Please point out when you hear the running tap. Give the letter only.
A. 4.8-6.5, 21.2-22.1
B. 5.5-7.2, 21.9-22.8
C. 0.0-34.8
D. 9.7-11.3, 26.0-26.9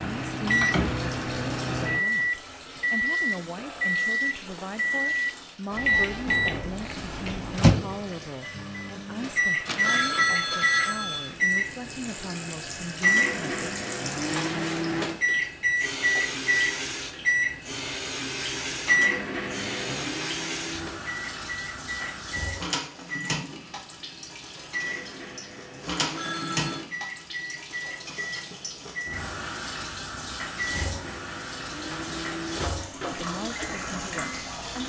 C.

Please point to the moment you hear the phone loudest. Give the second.
10 s.